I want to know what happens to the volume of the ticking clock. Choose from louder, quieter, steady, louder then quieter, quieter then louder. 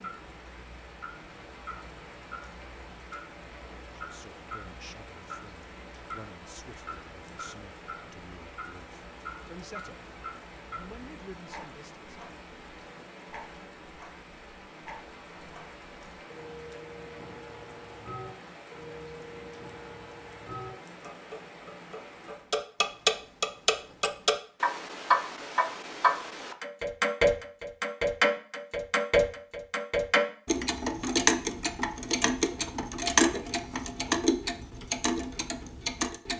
louder.